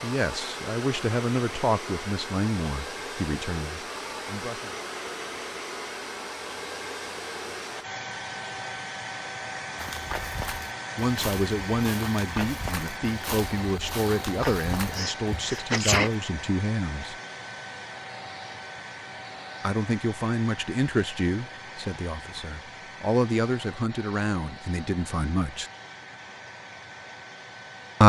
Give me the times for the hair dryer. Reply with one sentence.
You can hear the hair dryer from 0.0 to 28.0 s.